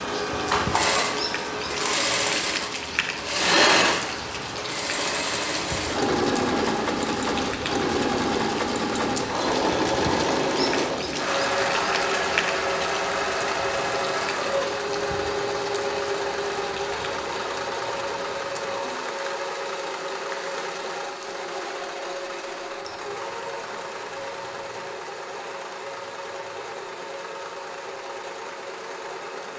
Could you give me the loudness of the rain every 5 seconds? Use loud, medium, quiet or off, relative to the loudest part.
loud, loud, loud, medium, medium, quiet.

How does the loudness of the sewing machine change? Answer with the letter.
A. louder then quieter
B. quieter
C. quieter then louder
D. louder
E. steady
B.